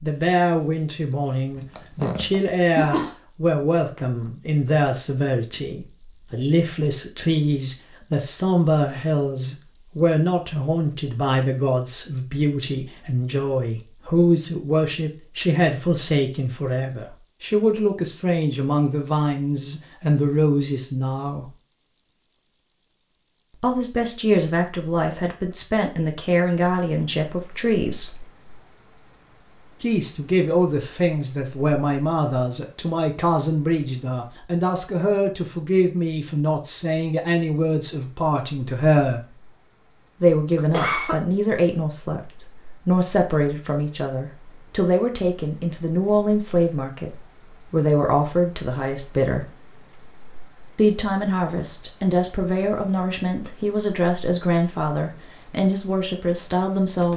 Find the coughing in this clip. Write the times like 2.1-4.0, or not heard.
1.6-3.1, 40.5-41.2.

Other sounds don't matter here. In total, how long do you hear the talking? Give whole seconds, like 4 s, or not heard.
51 s.